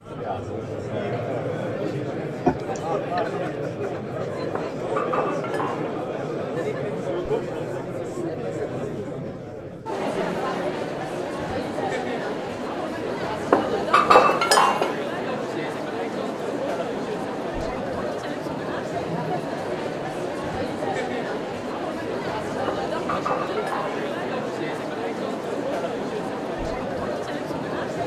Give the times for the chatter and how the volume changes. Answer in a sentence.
You can hear the chatter from 0.0 to 28.0 s, at a steady volume.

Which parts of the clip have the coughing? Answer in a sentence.
The coughing can be heard from 2.5 to 3.2 s.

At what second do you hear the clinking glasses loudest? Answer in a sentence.
The volume of the clinking glasses peaks at 14 seconds.